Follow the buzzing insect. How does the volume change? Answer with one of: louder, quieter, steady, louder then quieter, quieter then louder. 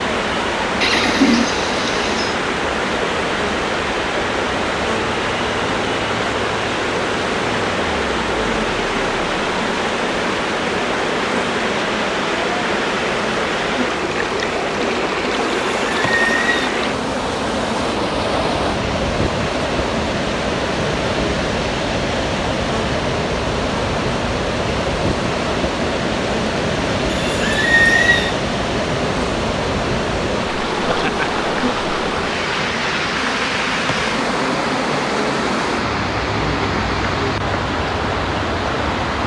steady.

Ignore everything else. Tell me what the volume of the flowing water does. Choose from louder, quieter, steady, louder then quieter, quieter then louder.
steady.